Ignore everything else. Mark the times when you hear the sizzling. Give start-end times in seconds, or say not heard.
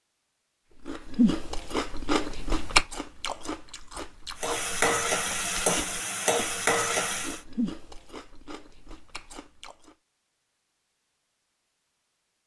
4.3-7.4.